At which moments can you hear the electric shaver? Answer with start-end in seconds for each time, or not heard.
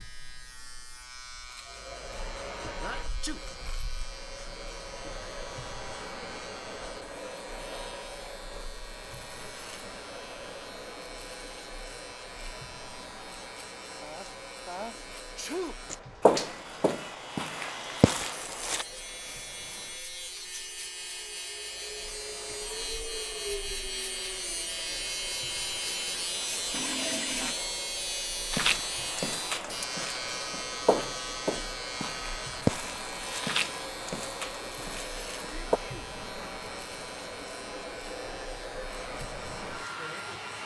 0.0-40.6.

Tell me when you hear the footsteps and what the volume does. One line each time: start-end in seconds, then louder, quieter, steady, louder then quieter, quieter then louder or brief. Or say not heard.
15.9-18.9 brief
28.5-35.8 louder then quieter.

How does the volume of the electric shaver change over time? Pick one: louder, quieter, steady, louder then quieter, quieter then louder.
louder then quieter.